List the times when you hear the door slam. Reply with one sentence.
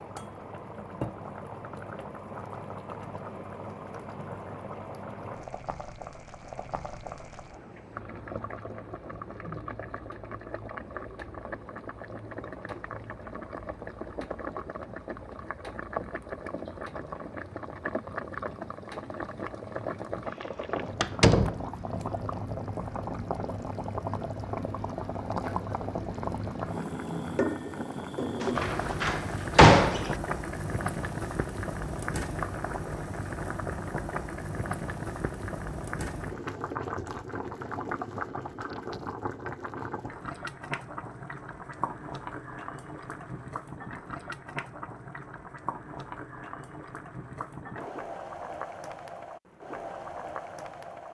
You can hear the door slam from 21.0 to 21.6 s and from 28.4 to 30.1 s.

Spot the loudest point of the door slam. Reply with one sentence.
The loudest moment of the door slam is at 30 seconds.